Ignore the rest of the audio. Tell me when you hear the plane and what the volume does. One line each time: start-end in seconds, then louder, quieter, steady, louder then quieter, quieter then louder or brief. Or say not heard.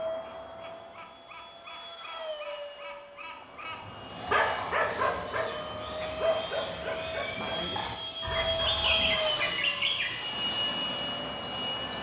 0.0-11.9 louder.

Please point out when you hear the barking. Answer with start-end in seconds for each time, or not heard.
3.9-9.7.